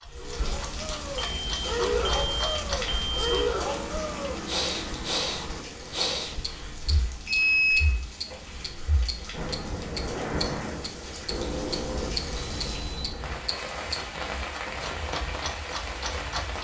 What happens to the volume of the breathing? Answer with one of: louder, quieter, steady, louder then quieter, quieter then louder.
quieter then louder.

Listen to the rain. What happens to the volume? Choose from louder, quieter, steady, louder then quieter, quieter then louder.
quieter then louder.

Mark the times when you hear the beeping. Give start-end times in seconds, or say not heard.
1.1-3.5, 7.2-8.3, 11.2-13.6.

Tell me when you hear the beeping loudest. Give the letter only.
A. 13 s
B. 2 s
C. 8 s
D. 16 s
C.